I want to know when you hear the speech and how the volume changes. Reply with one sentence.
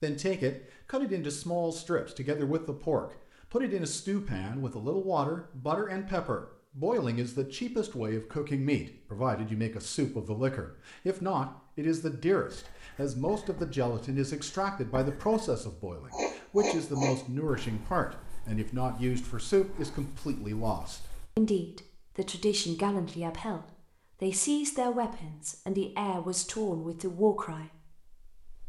You can hear the speech from 0.0 to 28.6 s, at a steady volume.